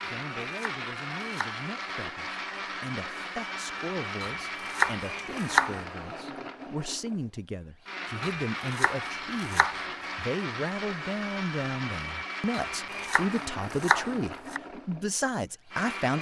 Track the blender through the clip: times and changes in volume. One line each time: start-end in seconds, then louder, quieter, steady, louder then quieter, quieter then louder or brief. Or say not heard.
0.0-16.1 steady.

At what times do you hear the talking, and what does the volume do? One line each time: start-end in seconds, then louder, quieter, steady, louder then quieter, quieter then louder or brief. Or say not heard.
0.0-16.1 louder.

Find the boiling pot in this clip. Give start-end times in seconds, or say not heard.
not heard.